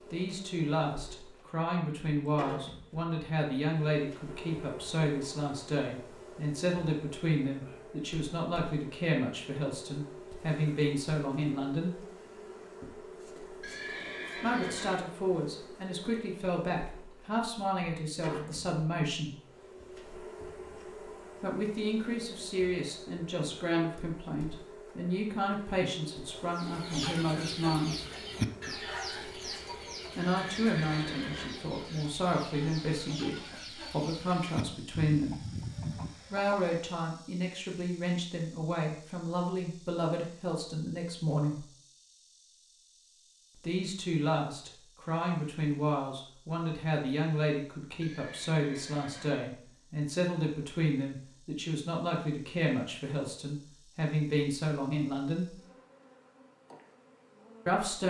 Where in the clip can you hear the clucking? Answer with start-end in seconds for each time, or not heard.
26.5-36.8.